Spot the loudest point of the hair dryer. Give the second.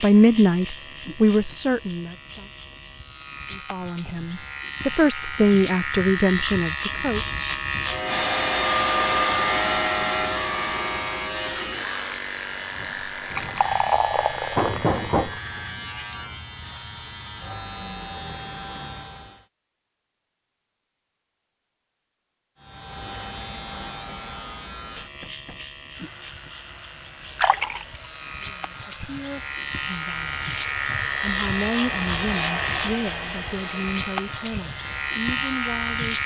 9 s.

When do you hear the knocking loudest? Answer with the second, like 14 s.
15 s.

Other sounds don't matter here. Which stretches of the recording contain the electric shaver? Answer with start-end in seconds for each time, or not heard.
0.0-19.4, 22.6-36.2.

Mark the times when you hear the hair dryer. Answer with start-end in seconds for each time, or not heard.
8.1-12.2, 25.9-36.2.